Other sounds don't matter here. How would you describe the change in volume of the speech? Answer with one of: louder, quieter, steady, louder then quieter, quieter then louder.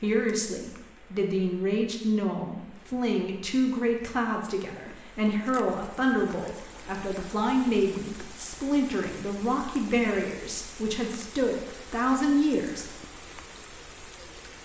steady.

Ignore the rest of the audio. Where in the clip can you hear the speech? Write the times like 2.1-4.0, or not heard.
0.0-12.9.